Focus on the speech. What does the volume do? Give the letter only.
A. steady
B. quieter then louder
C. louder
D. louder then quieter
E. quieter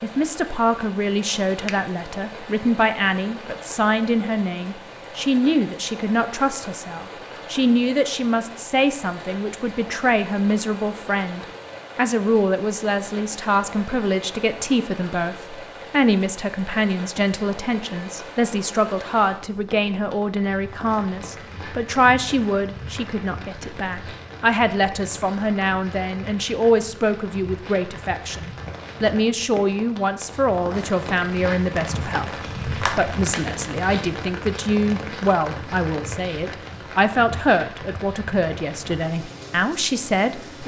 A.